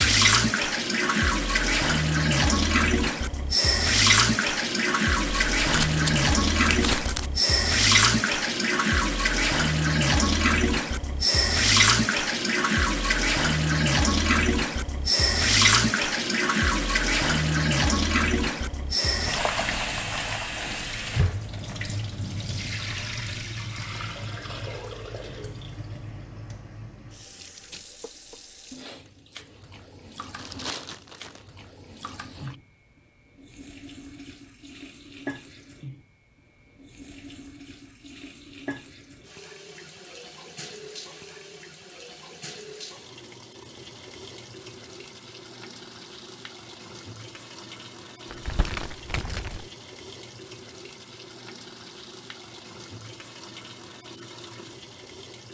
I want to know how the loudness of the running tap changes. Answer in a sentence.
The loudness of the running tap goes down.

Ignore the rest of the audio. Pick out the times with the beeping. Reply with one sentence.
You can't hear the beeping here.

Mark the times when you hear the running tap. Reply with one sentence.
You can hear the running tap from 0.0 to 55.4 s.